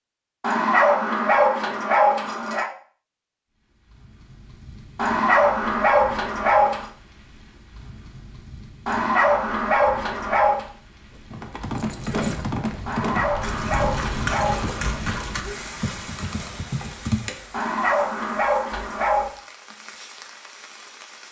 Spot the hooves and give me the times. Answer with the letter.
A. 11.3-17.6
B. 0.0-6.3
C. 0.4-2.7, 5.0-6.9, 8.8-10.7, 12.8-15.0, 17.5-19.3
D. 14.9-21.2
A.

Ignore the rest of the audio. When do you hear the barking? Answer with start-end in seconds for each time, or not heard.
0.4-2.7, 5.0-6.9, 8.8-10.7, 12.8-15.0, 17.5-19.3.